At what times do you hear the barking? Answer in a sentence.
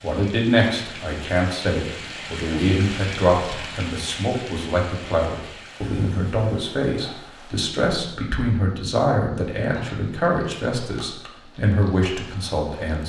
You can't hear the barking here.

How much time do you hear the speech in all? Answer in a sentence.
The speech can be heard for 13 seconds in total.